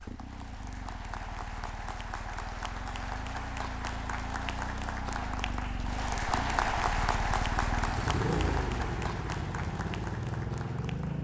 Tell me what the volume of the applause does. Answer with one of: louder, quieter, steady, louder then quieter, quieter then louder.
louder then quieter.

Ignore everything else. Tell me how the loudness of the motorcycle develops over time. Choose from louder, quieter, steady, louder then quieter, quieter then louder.
louder.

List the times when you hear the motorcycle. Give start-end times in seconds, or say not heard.
0.0-11.1.